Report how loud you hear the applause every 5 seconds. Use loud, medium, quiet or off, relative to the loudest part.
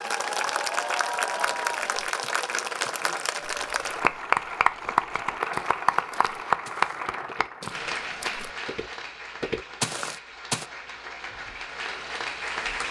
loud, loud, medium.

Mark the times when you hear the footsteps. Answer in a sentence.
You can hear the footsteps from 1.4 to 10.7 s.